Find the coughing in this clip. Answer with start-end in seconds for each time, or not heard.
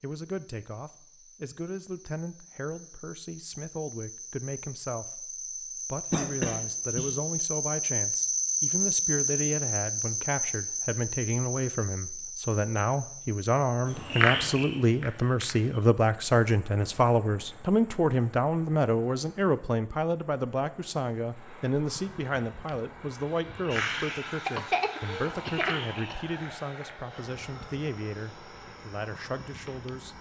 6.1-7.2, 24.4-26.1.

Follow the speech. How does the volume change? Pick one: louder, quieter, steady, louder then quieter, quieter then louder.
louder then quieter.